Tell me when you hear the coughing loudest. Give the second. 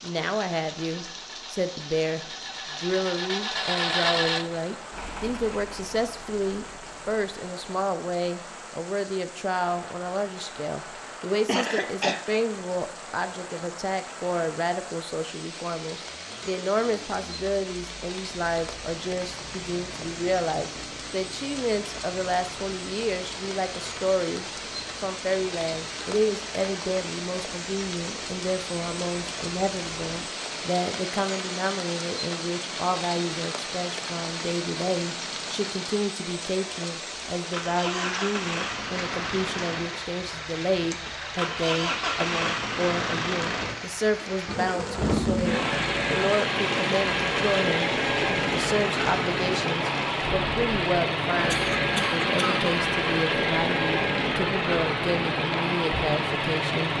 12 s.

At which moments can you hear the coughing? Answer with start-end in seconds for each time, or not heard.
11.4-12.2, 51.5-52.7.